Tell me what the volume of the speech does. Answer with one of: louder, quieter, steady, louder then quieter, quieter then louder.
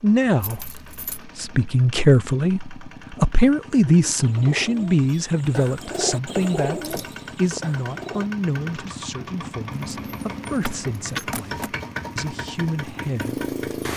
quieter.